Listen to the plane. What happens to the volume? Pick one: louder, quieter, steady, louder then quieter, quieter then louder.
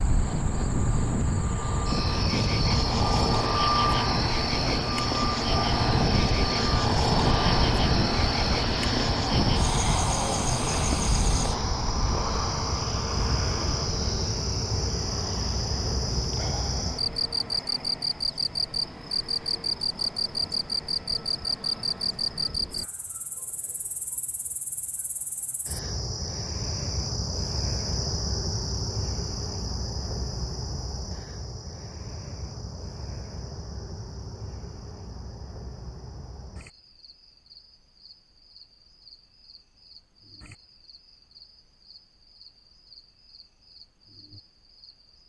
quieter.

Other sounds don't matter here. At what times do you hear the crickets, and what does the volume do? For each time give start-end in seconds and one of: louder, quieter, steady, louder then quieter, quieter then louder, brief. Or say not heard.
0.0-45.2 quieter.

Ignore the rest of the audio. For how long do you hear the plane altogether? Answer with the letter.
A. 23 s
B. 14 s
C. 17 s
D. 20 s
A.